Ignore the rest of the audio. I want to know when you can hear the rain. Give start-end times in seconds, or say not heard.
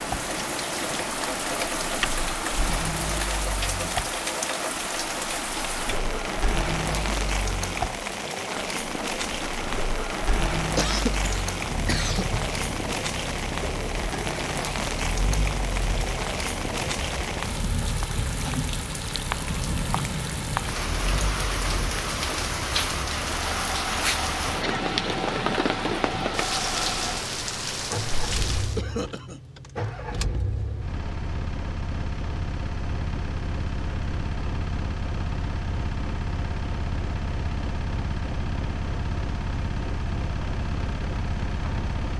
0.0-28.8.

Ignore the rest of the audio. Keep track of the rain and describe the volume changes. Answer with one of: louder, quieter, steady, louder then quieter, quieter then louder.
steady.